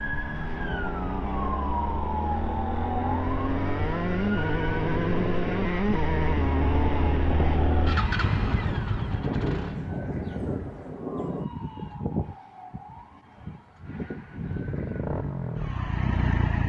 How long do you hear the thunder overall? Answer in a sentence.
The thunder can be heard for 3 seconds in total.